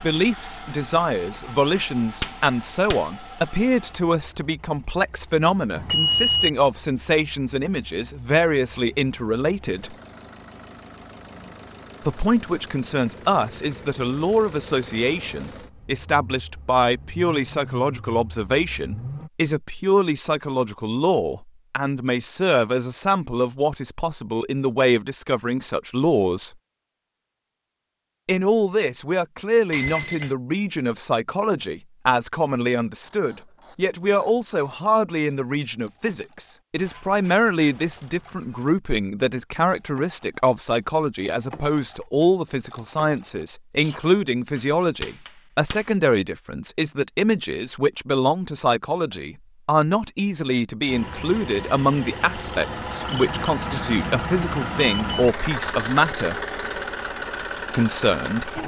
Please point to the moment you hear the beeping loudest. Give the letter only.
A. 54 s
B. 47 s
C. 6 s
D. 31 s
C.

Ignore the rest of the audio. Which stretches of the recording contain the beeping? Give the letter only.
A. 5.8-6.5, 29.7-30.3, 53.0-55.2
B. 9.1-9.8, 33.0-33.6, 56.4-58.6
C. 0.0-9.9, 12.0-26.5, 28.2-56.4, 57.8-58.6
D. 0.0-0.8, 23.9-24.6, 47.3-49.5
A.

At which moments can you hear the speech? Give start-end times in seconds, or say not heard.
0.0-9.9, 12.0-26.5, 28.2-56.4, 57.8-58.6.